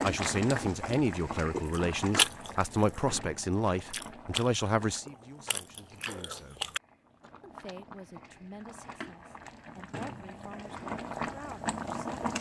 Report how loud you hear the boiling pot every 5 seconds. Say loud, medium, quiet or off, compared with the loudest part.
loud, quiet, loud.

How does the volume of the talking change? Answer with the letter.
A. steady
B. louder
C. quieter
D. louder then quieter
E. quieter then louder
C.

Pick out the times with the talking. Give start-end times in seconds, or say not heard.
0.0-6.8, 7.4-12.2.